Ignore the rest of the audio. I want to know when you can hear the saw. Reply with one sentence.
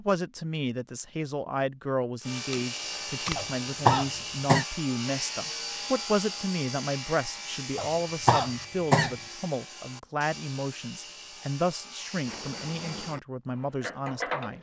The saw can be heard from 2.2 to 13.2 s.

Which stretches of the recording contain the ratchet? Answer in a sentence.
You can hear the ratchet from 12.2 to 14.5 s.